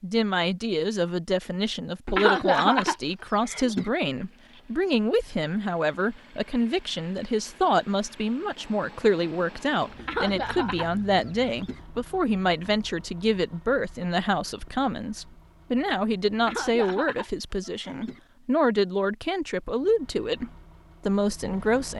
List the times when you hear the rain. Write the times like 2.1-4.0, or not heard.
not heard.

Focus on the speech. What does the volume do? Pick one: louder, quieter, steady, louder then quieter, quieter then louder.
steady.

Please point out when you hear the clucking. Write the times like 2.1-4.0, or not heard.
2.0-3.9, 9.9-11.8, 16.4-18.2.